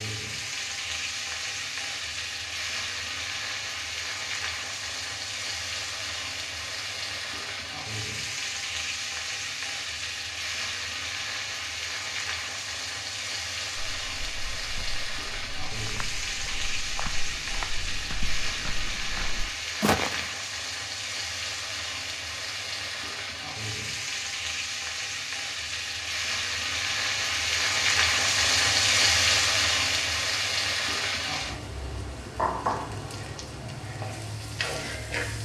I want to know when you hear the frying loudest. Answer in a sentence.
The volume of the frying peaks at 29 seconds.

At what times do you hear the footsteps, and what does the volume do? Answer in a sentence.
The footsteps can be heard from 13.8 to 20.3 s, getting louder.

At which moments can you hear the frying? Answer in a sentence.
You can hear the frying from 0.0 to 35.4 s.